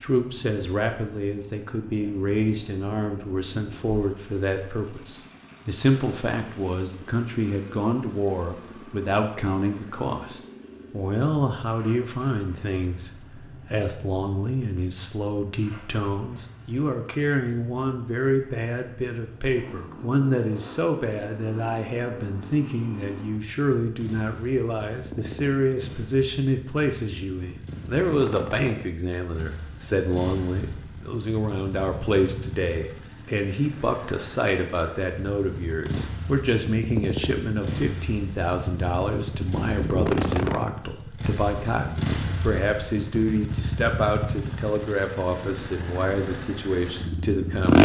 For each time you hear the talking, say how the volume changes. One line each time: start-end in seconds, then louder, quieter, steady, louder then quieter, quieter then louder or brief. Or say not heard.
0.0-47.8 steady.